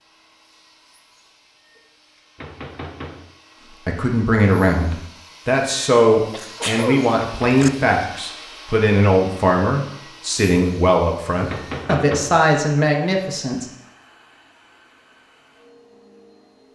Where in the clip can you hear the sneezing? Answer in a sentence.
The sneezing can be heard from 6.3 to 7.7 s.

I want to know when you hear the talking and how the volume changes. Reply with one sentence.
You can hear the talking from 3.9 to 13.7 s, at a steady volume.